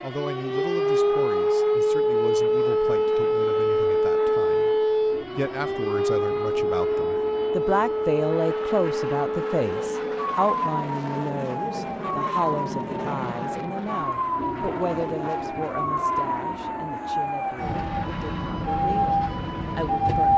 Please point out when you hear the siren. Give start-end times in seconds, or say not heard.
0.0-20.3.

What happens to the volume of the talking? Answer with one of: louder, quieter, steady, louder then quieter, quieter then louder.
louder then quieter.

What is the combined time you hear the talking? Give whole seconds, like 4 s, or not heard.
20 s.